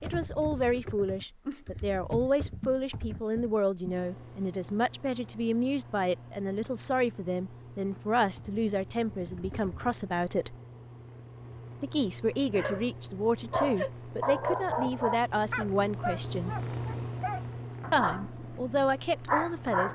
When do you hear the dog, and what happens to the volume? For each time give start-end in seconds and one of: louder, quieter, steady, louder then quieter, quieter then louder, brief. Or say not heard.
12.5-12.9 brief
13.5-19.9 quieter then louder.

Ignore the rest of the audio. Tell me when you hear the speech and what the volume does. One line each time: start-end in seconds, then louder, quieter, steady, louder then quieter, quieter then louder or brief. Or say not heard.
0.0-10.6 steady
11.8-16.6 steady
17.9-19.9 brief.